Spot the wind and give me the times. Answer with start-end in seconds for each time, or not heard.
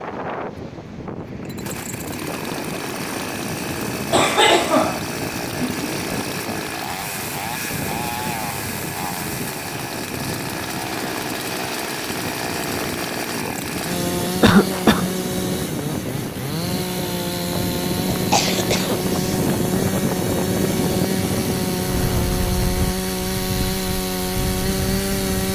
0.0-25.5.